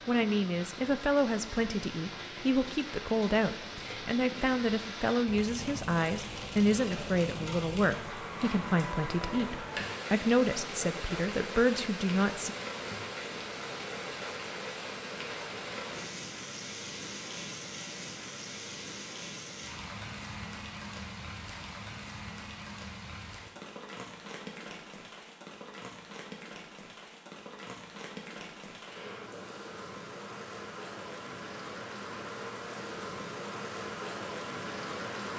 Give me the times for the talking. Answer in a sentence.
You can hear the talking from 0.1 to 12.6 s.